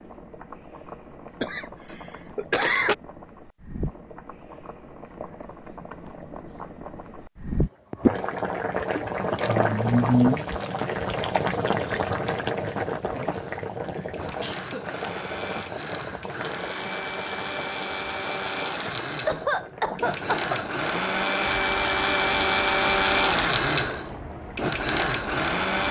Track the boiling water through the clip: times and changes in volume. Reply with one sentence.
You can hear the boiling water from 0.0 to 25.8 s, getting louder then quieter.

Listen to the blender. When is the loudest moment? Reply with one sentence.
The loudest moment of the blender is at 23 seconds.